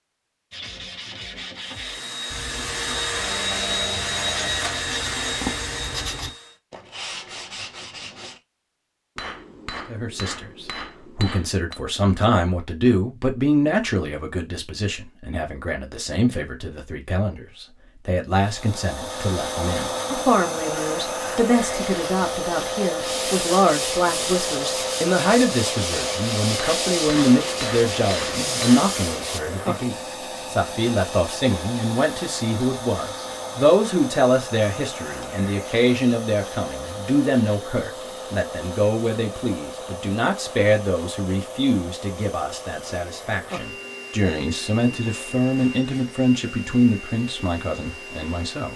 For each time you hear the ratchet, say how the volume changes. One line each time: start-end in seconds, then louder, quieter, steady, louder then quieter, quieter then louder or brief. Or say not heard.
not heard.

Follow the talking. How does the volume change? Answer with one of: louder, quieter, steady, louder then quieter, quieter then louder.
steady.